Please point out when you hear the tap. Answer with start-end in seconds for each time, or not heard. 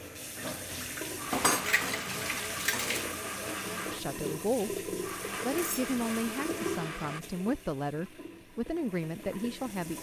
0.0-9.9.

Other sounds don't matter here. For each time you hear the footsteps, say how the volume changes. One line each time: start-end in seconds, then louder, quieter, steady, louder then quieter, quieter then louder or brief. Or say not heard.
not heard.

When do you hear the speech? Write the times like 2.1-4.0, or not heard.
3.9-9.9.